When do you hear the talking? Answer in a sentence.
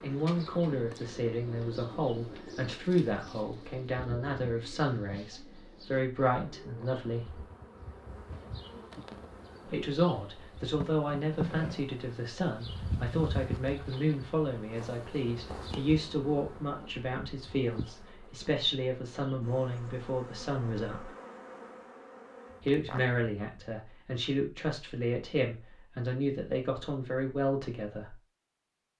You can hear the talking from 0.0 to 7.4 s, from 9.7 to 21.1 s and from 22.6 to 28.1 s.